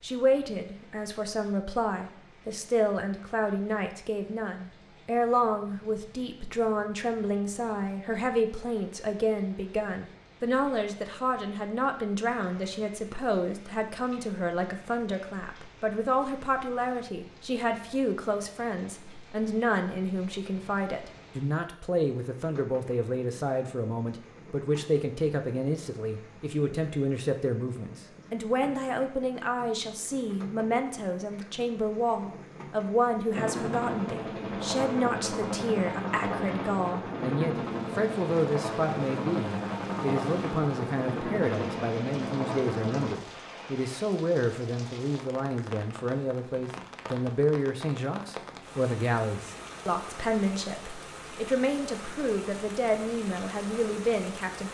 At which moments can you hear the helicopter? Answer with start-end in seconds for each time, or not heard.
33.3-43.1.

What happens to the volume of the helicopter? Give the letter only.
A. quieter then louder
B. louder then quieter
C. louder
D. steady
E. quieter
D.